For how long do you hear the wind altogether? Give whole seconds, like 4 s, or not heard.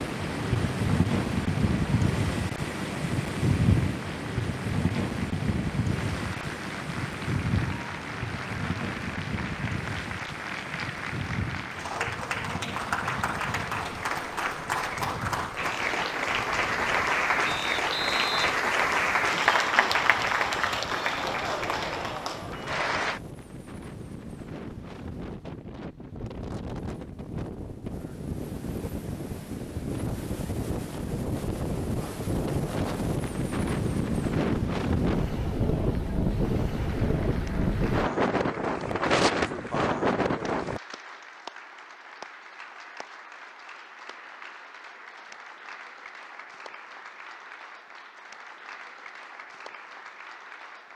41 s.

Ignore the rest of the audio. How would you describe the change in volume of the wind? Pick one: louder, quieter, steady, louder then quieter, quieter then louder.
quieter then louder.